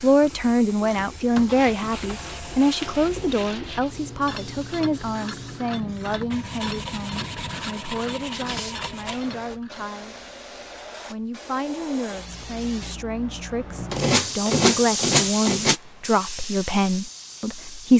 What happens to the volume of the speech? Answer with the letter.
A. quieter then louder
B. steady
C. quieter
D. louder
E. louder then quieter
A.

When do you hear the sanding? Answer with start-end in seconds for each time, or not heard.
1.4-3.9, 6.3-9.2, 13.9-15.8.